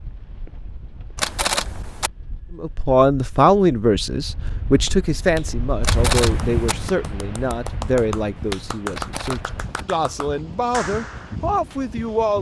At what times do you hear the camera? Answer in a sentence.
You can hear the camera from 1.1 to 2.1 s, from 5.8 to 6.8 s and from 8.9 to 9.8 s.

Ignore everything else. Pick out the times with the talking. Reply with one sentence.
You can hear the talking from 2.5 to 12.3 s.